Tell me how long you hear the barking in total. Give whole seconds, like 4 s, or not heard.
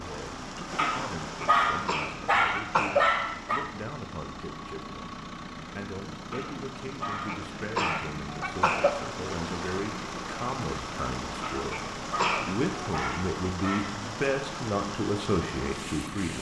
7 s.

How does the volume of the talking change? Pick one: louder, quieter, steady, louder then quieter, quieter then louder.
louder.